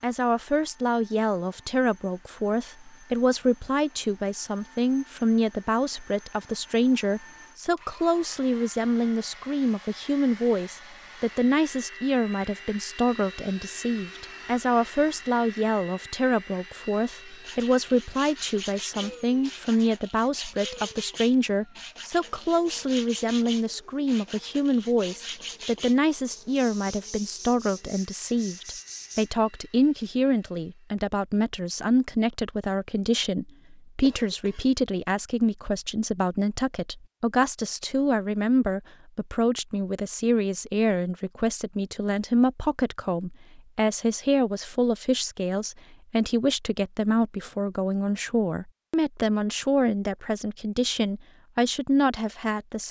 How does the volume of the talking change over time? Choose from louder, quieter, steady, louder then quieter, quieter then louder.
steady.